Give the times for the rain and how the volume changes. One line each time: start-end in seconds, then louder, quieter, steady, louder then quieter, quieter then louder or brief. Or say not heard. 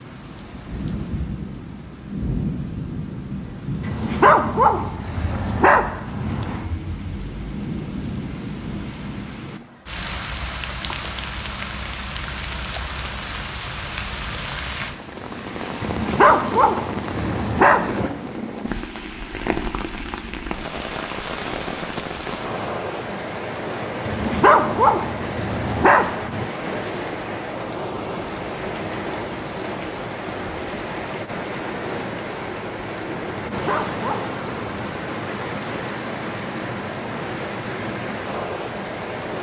0.0-39.3 steady.